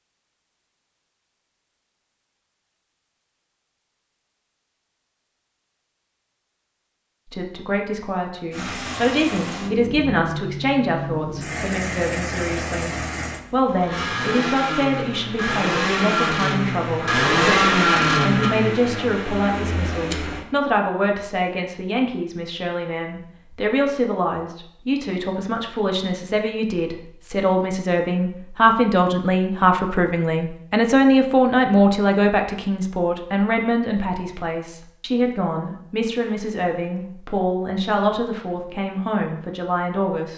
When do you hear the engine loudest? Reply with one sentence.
The loudest moment of the engine is at 18 seconds.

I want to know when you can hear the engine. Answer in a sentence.
You can hear the engine from 8.5 to 20.4 s.